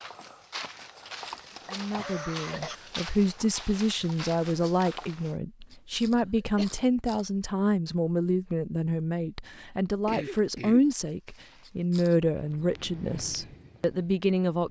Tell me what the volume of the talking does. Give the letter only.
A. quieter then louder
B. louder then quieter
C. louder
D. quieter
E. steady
E.